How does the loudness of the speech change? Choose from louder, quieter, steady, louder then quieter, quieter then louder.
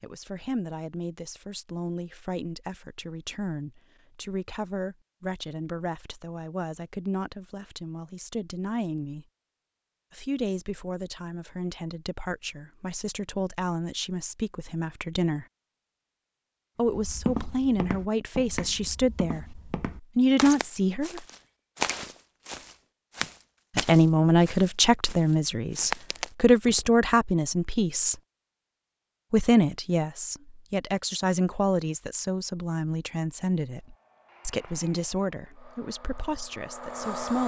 louder then quieter.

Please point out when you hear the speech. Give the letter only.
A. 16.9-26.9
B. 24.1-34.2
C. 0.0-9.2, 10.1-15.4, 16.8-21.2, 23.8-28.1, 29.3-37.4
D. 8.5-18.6
C.